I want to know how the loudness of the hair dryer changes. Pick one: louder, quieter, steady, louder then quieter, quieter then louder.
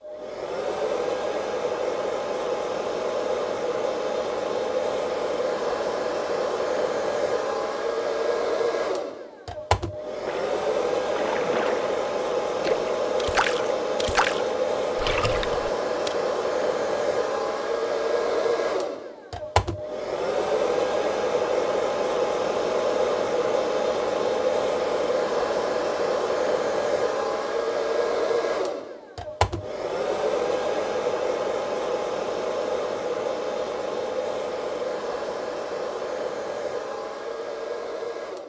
steady.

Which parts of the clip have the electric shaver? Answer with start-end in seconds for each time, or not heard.
not heard.